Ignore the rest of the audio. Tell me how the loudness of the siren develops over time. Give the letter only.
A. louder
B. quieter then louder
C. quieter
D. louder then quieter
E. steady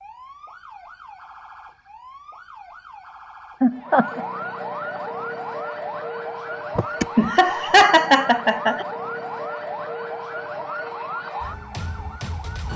A.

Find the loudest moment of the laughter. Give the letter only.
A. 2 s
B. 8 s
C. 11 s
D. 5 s
B.